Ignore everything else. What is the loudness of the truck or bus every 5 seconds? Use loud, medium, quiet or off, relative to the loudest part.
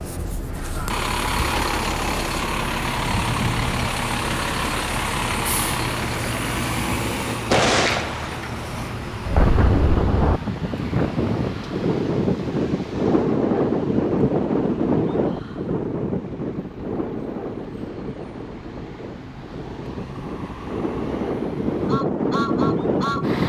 loud, loud, quiet, quiet, medium.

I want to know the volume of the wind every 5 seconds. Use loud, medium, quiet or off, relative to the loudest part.
off, off, loud, medium, loud.